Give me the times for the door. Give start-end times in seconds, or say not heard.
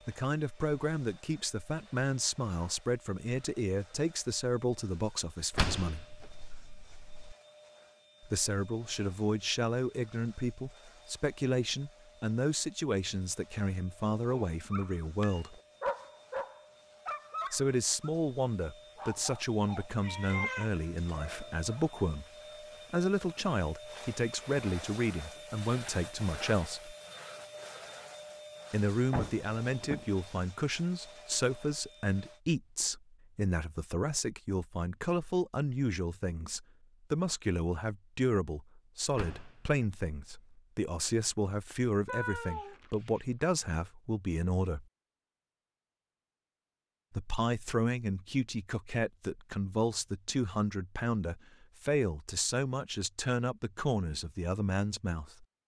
5.5-7.3, 29.1-30.1, 39.1-40.5.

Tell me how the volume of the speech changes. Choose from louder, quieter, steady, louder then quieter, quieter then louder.
steady.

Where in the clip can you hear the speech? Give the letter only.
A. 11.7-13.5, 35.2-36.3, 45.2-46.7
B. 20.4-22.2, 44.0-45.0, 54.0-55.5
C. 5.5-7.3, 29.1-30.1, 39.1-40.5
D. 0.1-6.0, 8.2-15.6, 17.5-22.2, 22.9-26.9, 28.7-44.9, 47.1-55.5
D.